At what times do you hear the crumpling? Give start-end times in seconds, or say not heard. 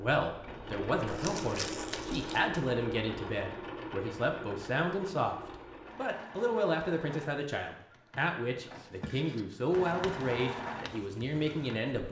1.1-2.5.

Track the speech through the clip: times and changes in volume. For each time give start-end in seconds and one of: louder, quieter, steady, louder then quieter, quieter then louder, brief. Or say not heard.
0.0-12.0 steady.